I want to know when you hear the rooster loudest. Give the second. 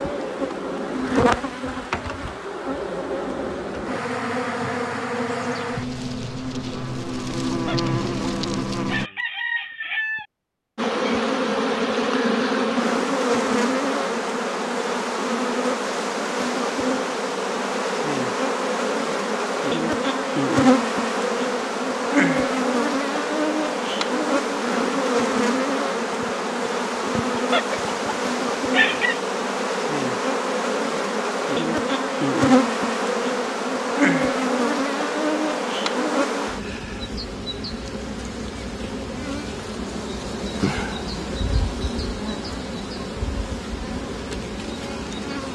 29 s.